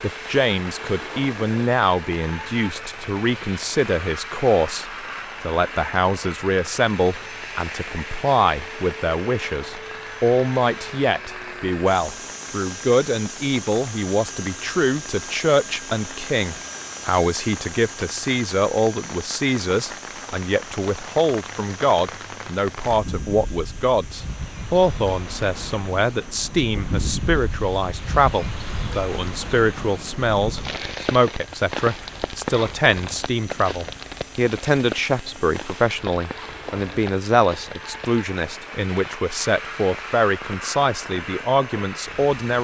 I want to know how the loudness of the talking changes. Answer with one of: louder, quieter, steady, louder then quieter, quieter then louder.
steady.